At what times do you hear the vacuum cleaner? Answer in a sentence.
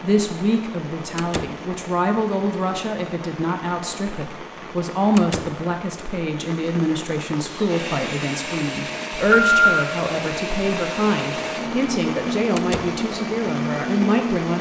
You can hear the vacuum cleaner from 7.4 to 14.5 s.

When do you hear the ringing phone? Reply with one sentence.
You can hear the ringing phone from 9.2 to 9.6 s.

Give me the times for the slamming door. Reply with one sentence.
The slamming door can be heard from 1.1 to 1.6 s, from 5.2 to 5.6 s and from 12.6 to 13.0 s.